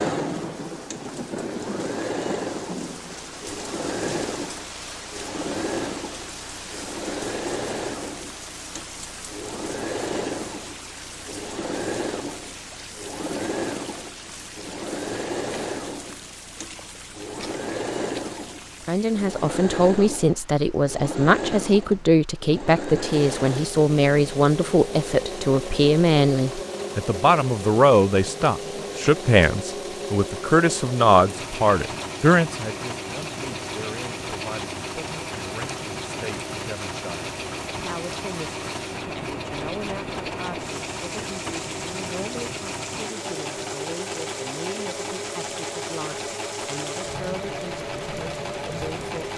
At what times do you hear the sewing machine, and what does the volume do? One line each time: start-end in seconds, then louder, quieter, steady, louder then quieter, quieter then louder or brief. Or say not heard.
0.0-49.3 steady.